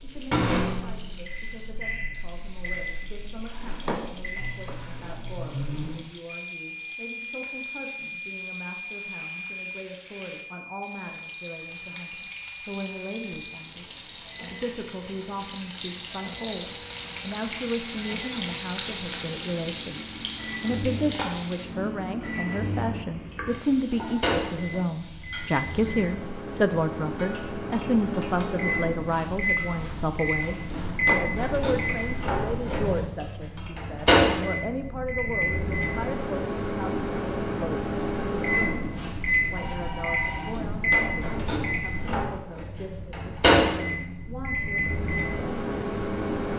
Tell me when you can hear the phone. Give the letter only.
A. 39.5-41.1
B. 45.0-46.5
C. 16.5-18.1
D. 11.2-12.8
A.